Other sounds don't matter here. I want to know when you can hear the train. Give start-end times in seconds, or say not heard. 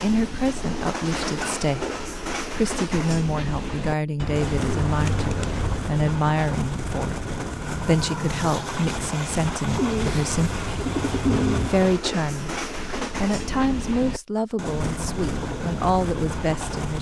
0.0-16.9.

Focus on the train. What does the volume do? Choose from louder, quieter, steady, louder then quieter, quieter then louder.
steady.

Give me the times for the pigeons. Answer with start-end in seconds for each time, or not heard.
4.2-5.8, 9.7-11.7.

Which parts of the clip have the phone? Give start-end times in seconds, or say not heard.
not heard.